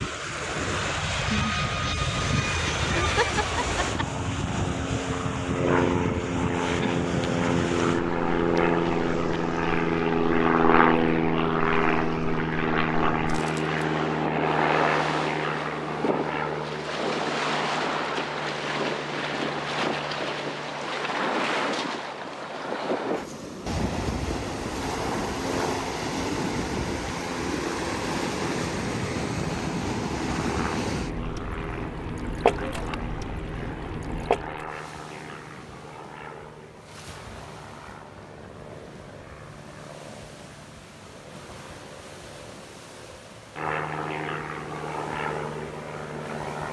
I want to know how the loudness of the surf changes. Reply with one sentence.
The volume of the surf goes down.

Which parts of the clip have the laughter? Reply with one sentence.
You can hear the laughter from 3.0 to 4.0 s.